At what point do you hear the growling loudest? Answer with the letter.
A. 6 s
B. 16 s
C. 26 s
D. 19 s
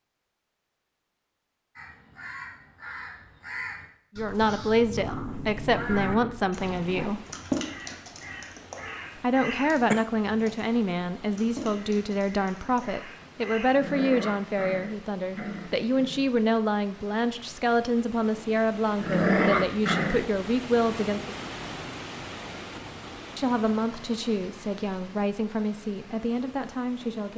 D.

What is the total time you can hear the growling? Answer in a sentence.
The growling can be heard for 6 seconds in total.